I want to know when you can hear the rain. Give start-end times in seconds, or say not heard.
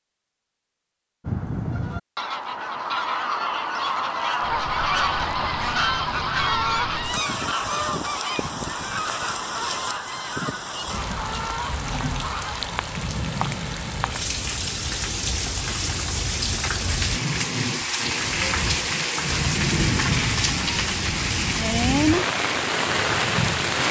4.4-23.8.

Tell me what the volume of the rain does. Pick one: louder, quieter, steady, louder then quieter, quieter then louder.
louder.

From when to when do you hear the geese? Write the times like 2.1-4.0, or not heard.
1.2-12.8.